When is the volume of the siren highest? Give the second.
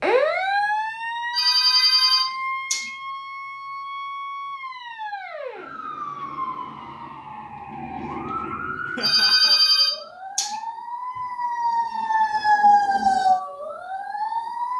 13 s.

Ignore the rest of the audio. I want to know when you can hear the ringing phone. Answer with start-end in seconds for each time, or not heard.
1.3-2.9, 9.0-10.6.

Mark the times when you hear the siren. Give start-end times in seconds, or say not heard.
0.0-14.7.